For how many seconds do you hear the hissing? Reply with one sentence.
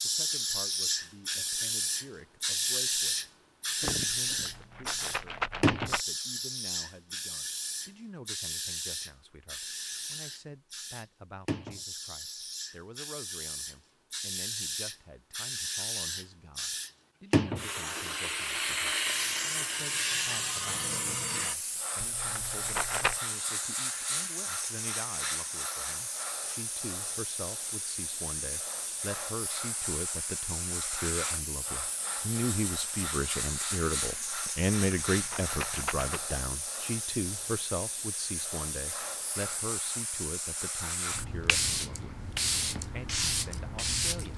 The hissing can be heard for 44 seconds in total.